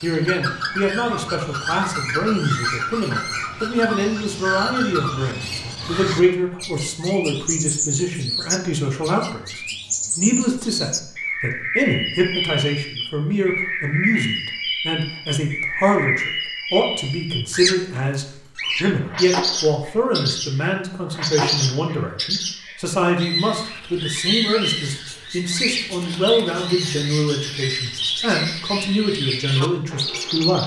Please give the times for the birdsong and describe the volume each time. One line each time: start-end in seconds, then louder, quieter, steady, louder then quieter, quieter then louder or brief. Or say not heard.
0.0-30.6 steady.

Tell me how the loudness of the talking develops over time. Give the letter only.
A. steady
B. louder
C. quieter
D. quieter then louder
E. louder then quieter
A.